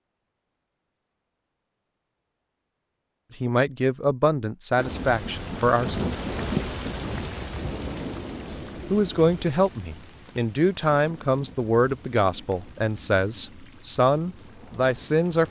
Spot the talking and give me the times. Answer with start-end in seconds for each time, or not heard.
3.4-6.0, 8.9-15.4.